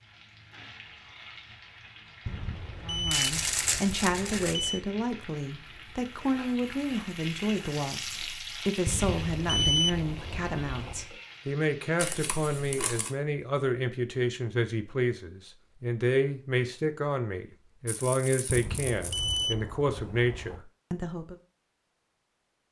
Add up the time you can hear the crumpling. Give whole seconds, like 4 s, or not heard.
4 s.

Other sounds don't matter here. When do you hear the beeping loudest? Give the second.
10 s.